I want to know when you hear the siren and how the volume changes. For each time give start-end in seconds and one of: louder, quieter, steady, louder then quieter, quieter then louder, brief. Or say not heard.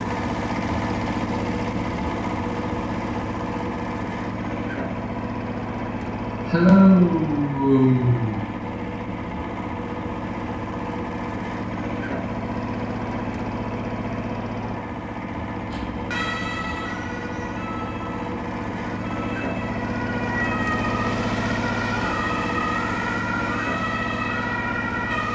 15.7-25.2 quieter then louder.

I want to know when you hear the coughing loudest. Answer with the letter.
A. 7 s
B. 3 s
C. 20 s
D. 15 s
A.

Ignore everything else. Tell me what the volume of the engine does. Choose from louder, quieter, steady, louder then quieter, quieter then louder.
steady.